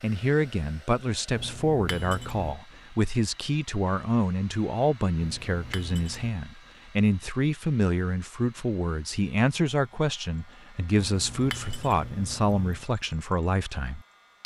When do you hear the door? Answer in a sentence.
You can't hear the door here.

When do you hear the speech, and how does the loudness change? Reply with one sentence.
The speech can be heard from 0.0 to 14.4 s, at a steady volume.